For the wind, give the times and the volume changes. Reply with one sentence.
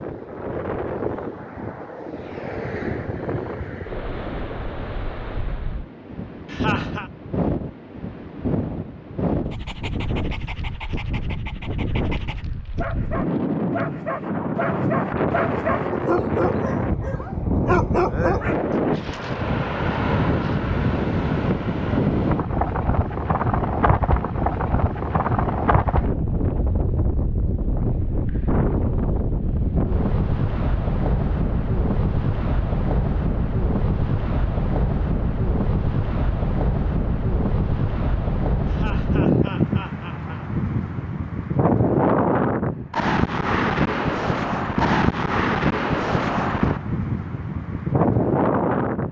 The wind can be heard from 0.0 to 49.0 s, getting louder.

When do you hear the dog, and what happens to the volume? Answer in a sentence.
You can hear the dog from 9.5 to 18.6 s, getting louder.